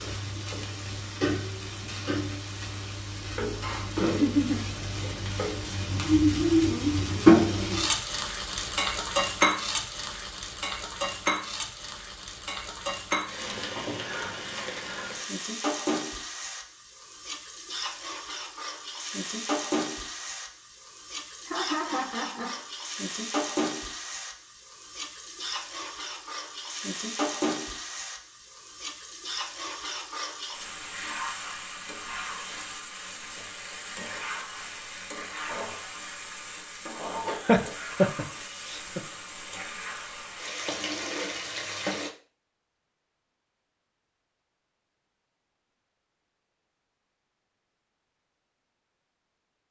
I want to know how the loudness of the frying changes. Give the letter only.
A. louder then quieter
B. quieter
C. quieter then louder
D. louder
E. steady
B.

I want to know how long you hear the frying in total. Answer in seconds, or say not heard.
42 s.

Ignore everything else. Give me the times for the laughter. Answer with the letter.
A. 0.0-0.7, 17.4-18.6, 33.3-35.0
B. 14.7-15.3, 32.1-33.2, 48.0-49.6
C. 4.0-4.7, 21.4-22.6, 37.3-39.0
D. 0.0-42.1
C.